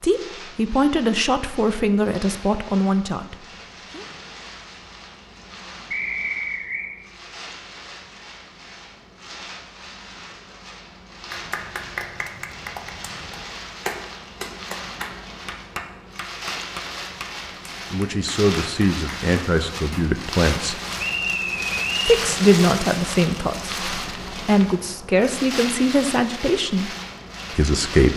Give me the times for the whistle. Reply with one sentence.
You can hear the whistle from 5.9 to 6.9 s and from 20.9 to 22.2 s.